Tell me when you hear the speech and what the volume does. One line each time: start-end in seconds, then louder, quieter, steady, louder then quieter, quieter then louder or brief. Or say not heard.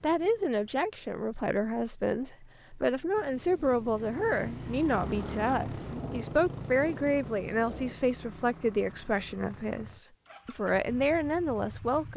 0.0-12.1 steady.